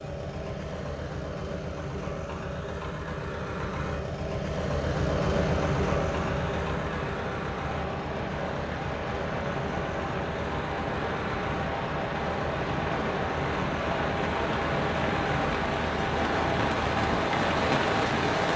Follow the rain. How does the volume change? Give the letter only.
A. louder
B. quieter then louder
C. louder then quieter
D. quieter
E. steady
A.